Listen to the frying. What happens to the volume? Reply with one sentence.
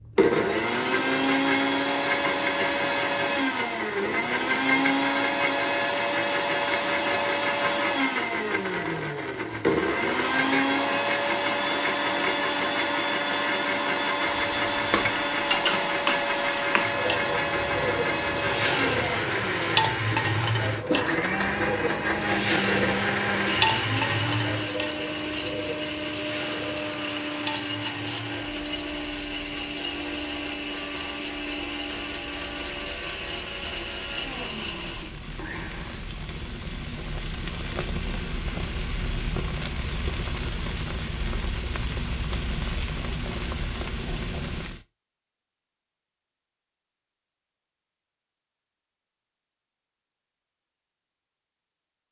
The volume of the frying goes down, then up.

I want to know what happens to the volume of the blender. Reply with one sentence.
The volume of the blender goes down.